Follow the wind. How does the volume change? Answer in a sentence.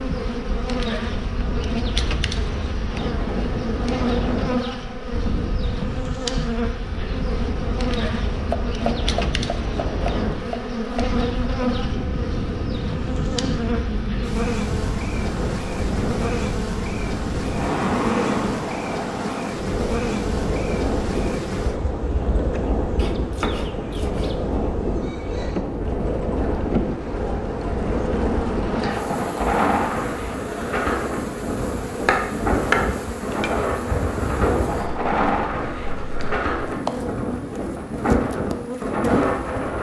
The volume of the wind goes up.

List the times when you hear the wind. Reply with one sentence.
You can hear the wind from 0.1 to 39.7 s.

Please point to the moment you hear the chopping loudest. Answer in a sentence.
The loudest moment of the chopping is at 33 seconds.